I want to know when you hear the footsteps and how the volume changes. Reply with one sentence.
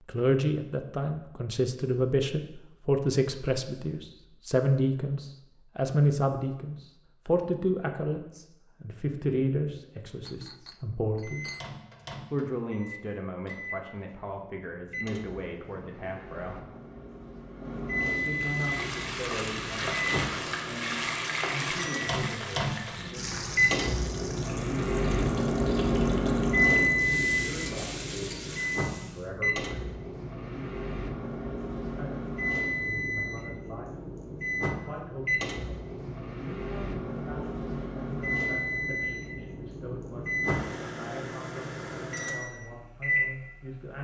You can't hear the footsteps here.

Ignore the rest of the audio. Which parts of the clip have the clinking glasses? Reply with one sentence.
The clinking glasses can be heard from 10.2 to 11.7 s.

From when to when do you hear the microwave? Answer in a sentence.
The microwave can be heard from 11.2 to 43.9 s.